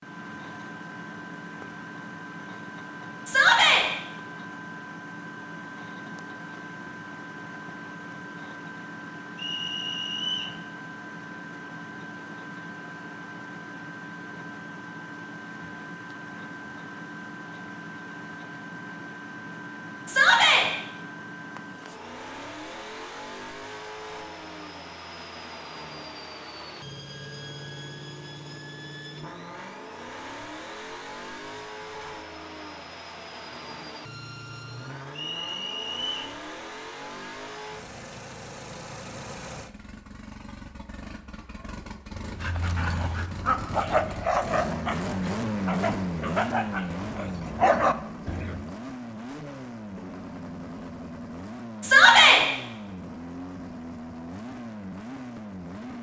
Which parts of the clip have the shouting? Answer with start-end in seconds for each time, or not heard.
3.2-3.9, 20.1-20.6, 51.8-52.4.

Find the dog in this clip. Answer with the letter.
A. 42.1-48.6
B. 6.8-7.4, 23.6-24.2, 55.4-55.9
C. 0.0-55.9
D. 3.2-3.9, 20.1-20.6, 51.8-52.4
A.